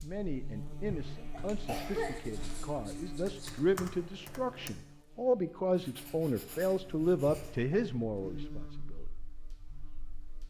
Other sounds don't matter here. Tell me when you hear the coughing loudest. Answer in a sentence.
The volume of the coughing peaks at 2 seconds.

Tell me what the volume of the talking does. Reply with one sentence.
The volume of the talking goes up.